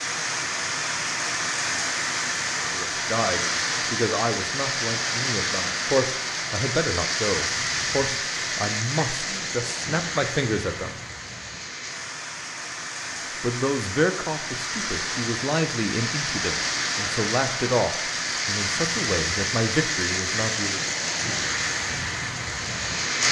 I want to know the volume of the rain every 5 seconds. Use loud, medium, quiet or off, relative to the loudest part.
loud, loud, medium, loud, loud.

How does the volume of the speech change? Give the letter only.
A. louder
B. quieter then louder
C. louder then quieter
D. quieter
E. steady
E.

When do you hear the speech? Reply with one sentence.
You can hear the speech from 2.5 to 11.0 s and from 13.4 to 20.9 s.